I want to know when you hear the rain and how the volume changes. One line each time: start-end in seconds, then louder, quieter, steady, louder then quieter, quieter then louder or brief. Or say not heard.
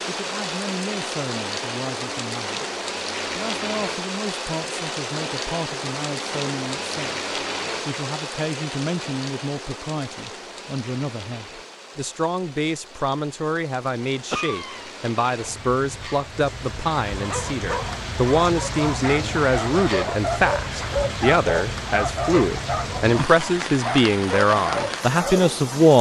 0.0-25.9 quieter then louder.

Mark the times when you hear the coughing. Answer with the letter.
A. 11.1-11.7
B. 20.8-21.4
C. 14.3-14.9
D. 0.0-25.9
C.